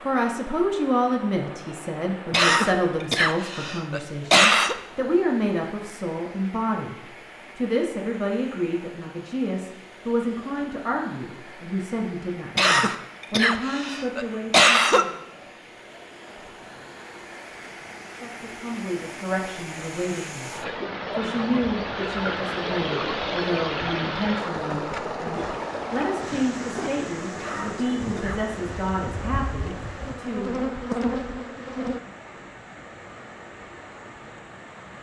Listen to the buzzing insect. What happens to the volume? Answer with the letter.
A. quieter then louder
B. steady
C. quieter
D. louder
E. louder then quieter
D.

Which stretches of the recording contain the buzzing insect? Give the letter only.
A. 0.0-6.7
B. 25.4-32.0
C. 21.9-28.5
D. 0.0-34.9
B.